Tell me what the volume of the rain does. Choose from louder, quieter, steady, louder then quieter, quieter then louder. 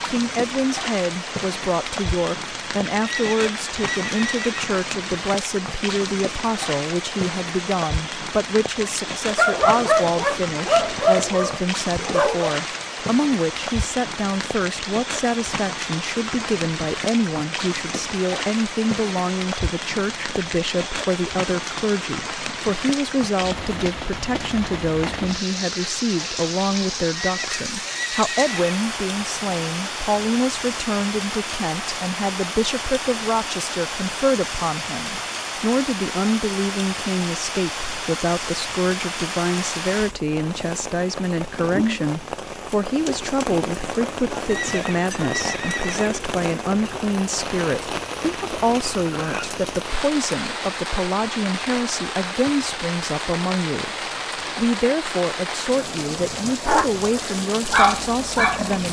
steady.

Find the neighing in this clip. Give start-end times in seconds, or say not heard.
3.0-4.5, 27.1-28.8, 44.5-46.2.